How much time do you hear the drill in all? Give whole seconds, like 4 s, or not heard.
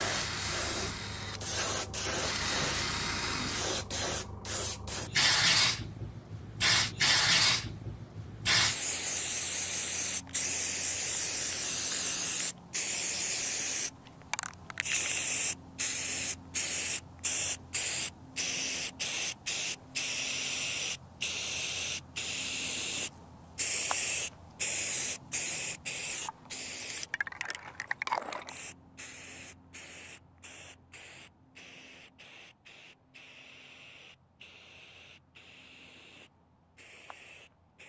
4 s.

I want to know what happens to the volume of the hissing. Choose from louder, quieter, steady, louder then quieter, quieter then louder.
quieter.